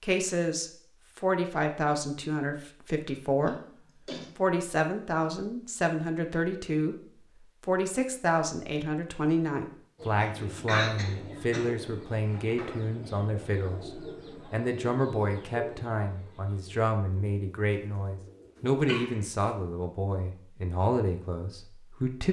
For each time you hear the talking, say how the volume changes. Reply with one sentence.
You can hear the talking from 0.0 to 22.2 s, at a steady volume.